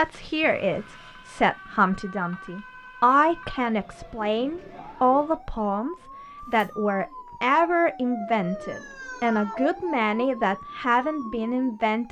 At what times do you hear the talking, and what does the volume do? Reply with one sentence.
The talking can be heard from 0.0 to 12.0 s, at a steady volume.